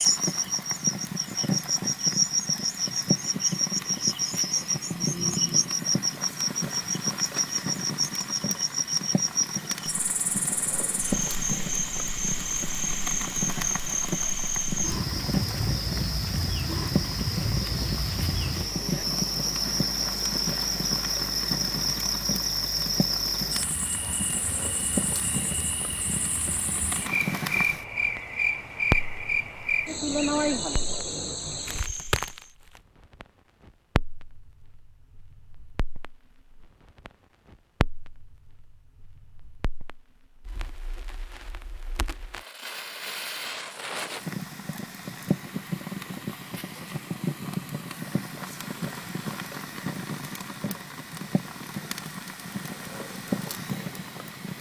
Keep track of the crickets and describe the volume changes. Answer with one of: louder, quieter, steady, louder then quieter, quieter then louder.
steady.